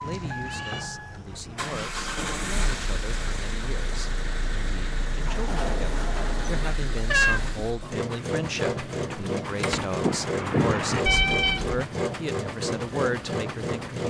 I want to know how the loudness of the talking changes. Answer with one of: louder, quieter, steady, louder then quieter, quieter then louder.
louder.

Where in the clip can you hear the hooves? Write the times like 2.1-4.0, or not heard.
not heard.